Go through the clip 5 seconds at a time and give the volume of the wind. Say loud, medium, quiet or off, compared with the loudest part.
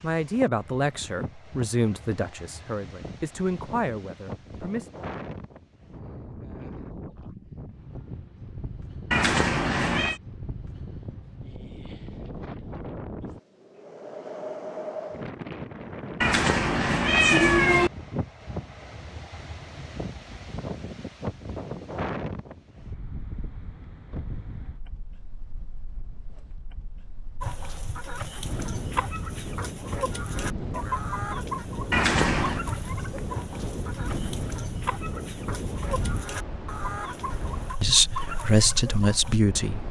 medium, medium, loud, loud, loud, medium, loud, loud.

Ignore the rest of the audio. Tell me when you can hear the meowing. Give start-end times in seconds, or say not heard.
9.1-10.2, 16.2-17.9, 31.9-32.6.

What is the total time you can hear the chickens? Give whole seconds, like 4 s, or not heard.
12 s.